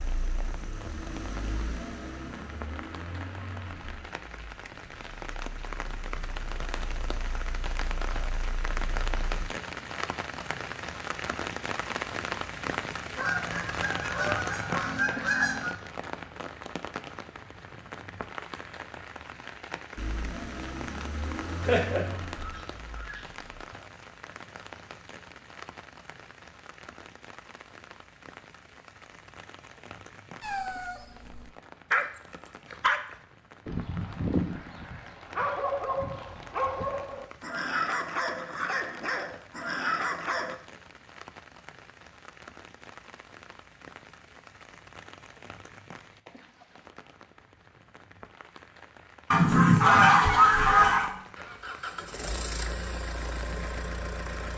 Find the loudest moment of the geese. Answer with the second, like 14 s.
50 s.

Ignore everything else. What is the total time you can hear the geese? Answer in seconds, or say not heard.
6 s.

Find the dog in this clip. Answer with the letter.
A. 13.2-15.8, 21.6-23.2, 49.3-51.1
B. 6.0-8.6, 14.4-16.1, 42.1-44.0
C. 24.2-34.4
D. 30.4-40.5
D.